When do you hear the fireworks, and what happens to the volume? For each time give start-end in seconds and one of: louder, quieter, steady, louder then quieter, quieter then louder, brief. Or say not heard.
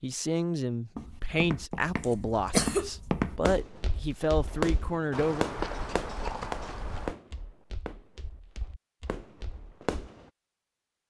3.5-10.2 quieter.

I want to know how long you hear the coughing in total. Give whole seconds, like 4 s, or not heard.
2 s.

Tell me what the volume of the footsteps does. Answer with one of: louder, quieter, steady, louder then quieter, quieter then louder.
quieter.